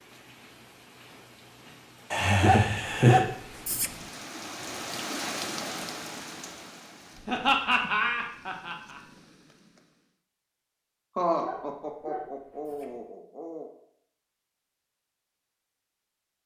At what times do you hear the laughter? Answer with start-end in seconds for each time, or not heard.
2.1-3.2, 7.2-9.0, 11.2-13.7.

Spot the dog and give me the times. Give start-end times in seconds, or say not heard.
2.4-3.9, 11.4-12.9.